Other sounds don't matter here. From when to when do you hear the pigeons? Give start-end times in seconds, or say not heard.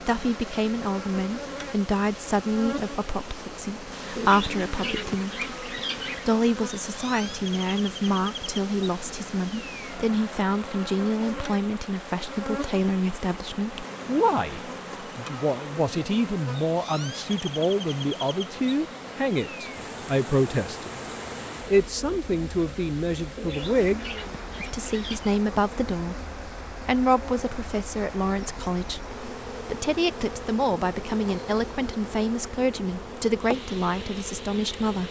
4.2-6.3, 23.4-25.4.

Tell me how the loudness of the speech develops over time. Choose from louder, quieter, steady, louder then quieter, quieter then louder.
steady.